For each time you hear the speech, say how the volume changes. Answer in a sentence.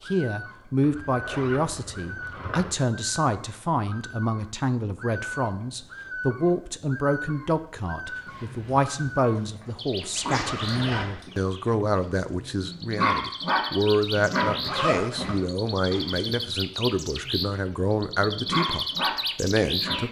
The speech can be heard from 0.1 to 20.0 s, at a steady volume.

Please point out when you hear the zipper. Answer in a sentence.
The zipper can be heard from 0.8 to 2.8 s, from 10.3 to 11.2 s and from 14.7 to 15.3 s.